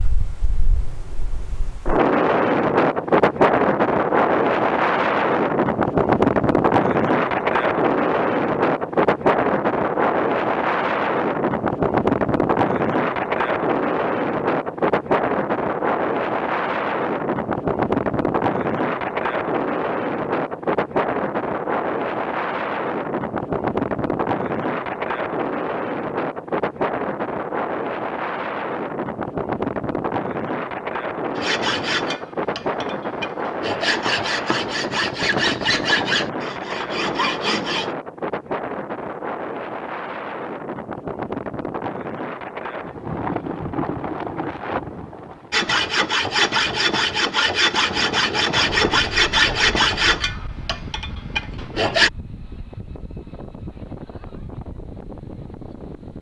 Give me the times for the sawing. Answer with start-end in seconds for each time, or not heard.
31.4-37.9, 45.5-52.1.